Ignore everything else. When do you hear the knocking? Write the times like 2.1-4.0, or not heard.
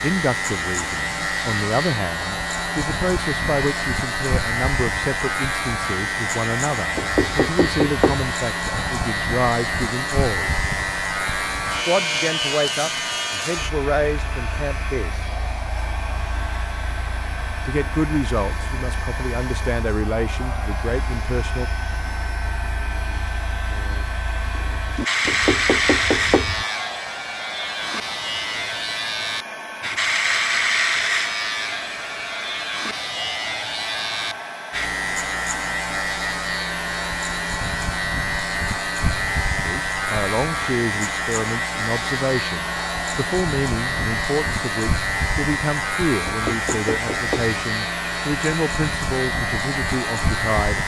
7.0-8.3, 25.2-26.6, 46.2-47.5.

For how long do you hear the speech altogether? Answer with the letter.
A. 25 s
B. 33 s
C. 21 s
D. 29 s
D.